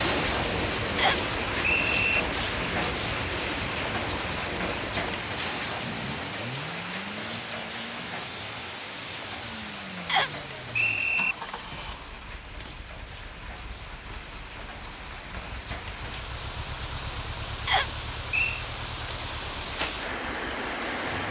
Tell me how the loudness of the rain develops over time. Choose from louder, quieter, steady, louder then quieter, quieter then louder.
quieter then louder.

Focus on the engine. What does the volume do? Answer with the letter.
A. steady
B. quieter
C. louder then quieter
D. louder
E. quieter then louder
B.